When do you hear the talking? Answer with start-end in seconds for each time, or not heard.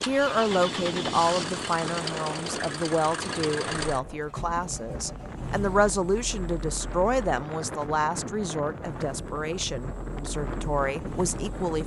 0.0-11.8.